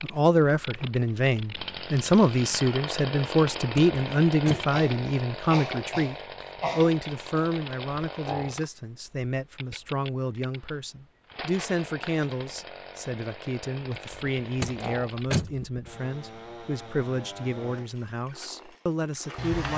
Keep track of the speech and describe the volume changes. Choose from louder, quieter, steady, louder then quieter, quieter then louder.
quieter.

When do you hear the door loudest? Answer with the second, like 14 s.
15 s.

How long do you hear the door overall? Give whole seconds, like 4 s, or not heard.
2 s.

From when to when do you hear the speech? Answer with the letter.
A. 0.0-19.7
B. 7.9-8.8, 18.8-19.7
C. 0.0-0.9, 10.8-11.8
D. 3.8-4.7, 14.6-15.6
A.